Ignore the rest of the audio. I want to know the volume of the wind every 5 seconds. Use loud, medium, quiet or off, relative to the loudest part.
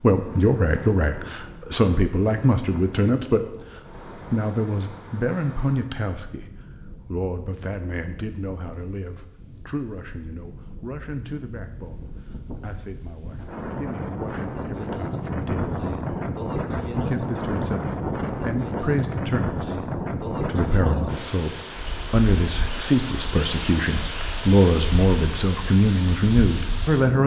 quiet, quiet, medium, loud, loud, medium.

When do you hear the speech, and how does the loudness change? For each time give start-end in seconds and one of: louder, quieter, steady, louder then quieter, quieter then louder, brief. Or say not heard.
0.0-27.2 quieter then louder.